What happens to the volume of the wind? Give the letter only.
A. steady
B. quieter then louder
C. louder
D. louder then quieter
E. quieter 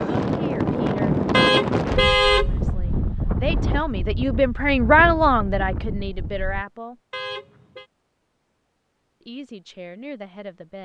E.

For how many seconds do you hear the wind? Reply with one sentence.
The wind can be heard for 7 seconds in total.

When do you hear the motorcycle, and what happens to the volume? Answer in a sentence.
The motorcycle can't be heard in this clip.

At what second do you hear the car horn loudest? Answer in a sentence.
The loudest moment of the car horn is at 2 seconds.